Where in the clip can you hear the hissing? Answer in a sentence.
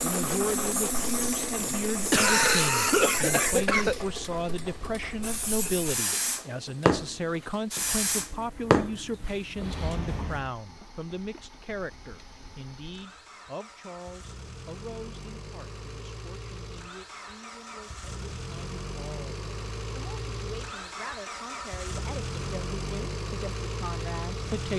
The hissing can be heard from 0.0 to 10.6 s.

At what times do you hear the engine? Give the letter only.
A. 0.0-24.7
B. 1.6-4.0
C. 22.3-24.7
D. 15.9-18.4
A.